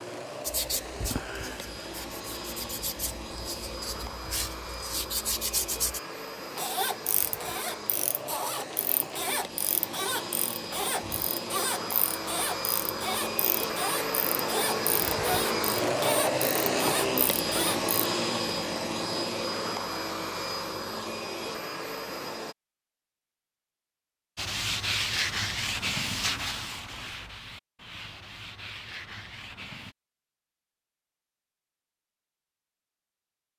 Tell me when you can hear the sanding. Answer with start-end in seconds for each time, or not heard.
0.4-6.0, 24.4-29.9.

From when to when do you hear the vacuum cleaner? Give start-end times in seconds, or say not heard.
0.0-22.6.